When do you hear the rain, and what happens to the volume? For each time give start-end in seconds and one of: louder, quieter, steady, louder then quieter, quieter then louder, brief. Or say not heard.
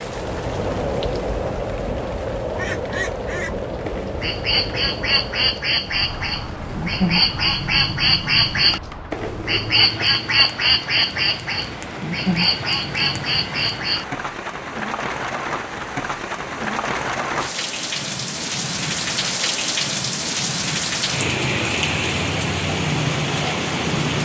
0.0-24.2 quieter then louder.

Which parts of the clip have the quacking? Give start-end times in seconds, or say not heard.
2.5-14.1.